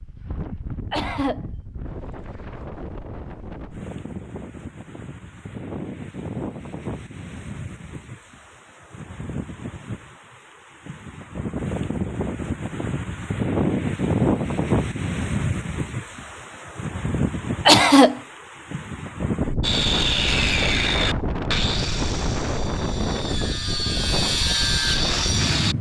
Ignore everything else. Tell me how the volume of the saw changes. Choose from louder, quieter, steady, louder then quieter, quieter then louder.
quieter then louder.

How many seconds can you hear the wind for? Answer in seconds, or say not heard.
26 s.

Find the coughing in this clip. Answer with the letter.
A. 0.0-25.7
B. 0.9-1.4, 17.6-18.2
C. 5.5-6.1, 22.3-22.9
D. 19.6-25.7
B.